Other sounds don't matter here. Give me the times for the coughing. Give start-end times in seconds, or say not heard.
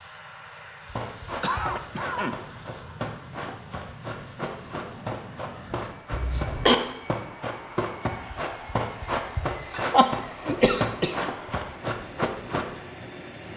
1.4-2.8, 6.1-6.8, 9.7-11.2.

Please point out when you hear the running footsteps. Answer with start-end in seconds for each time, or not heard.
0.8-12.8.